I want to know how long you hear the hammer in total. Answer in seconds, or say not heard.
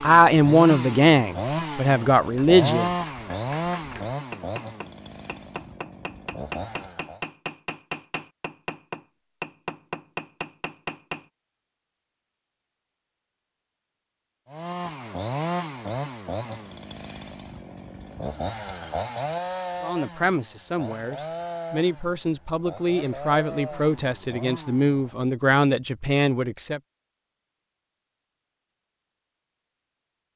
9 s.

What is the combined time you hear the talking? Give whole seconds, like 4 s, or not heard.
10 s.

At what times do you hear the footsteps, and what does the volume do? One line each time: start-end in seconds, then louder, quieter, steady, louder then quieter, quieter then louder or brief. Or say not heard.
not heard.